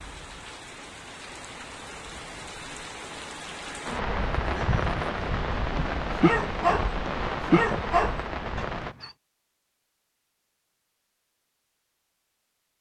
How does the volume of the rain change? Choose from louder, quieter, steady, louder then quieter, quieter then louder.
louder.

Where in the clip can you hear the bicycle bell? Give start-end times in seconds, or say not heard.
not heard.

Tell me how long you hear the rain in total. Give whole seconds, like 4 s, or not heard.
9 s.